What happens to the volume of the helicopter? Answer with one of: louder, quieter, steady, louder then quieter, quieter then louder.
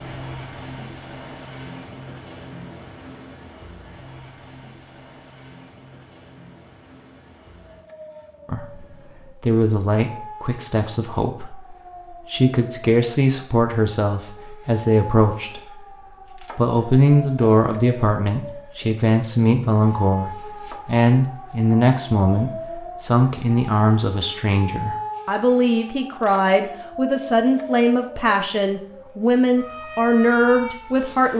quieter.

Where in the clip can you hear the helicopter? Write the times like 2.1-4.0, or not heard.
0.0-9.4.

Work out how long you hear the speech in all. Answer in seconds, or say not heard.
23 s.